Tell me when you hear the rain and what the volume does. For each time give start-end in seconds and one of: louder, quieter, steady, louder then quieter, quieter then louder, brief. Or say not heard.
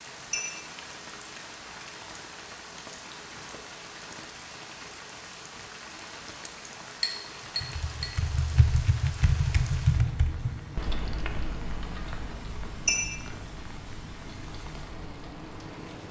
0.0-16.0 steady.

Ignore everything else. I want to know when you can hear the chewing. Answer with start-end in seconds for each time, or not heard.
not heard.